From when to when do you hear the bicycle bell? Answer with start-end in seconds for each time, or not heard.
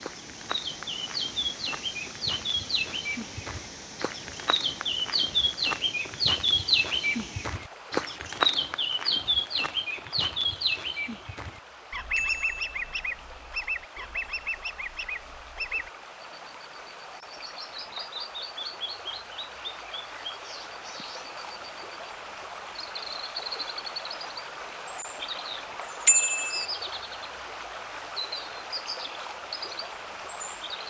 12.2-12.9, 26.1-26.6.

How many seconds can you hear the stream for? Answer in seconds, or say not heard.
31 s.